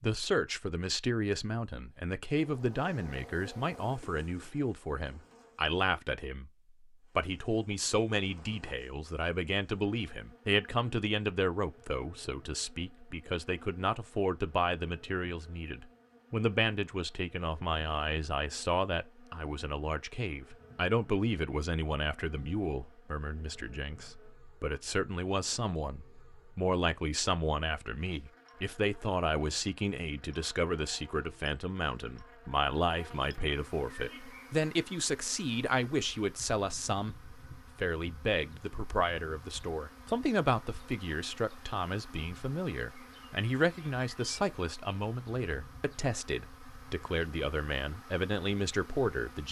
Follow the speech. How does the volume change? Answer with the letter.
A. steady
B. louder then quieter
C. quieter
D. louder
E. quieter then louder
A.